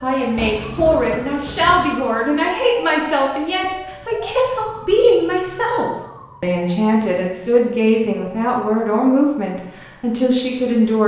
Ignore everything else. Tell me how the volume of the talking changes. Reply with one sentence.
The loudness of the talking stays about the same.